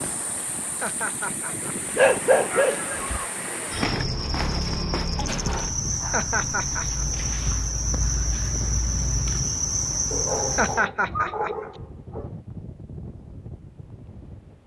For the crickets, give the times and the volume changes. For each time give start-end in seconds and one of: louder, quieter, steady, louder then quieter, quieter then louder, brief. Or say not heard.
0.0-10.8 louder.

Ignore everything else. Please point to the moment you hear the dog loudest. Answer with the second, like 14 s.
2 s.